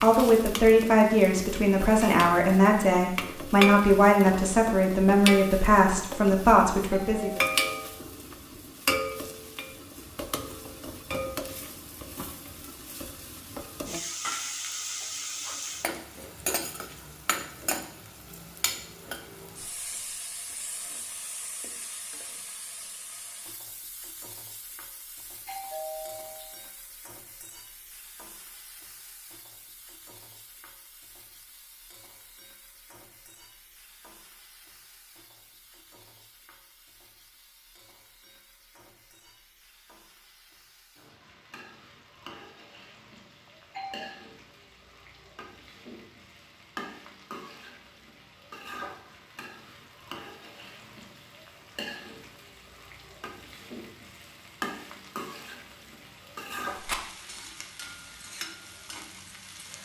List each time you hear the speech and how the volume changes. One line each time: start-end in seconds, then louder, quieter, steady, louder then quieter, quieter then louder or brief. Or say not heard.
0.0-7.4 steady.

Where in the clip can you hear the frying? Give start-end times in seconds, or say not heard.
0.0-59.8.